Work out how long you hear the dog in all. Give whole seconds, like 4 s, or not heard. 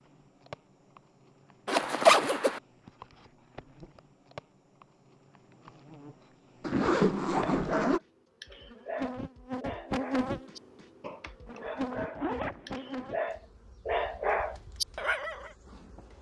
8 s.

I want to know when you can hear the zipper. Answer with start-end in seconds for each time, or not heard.
1.6-2.6, 6.6-8.0, 11.4-13.1.